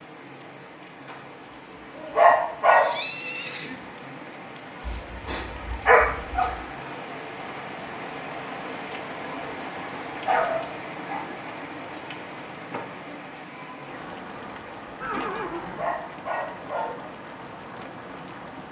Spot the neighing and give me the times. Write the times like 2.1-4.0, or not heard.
2.0-4.0, 15.0-16.0.